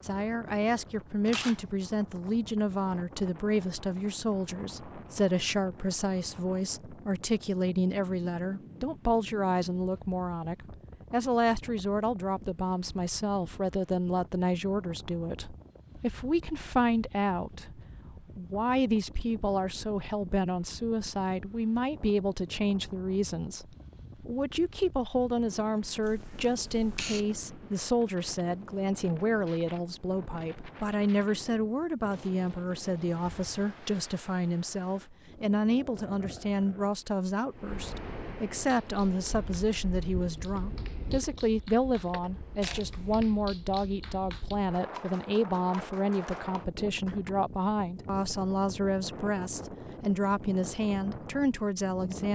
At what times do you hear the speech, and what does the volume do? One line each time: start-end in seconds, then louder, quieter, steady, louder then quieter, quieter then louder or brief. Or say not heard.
0.0-52.3 steady.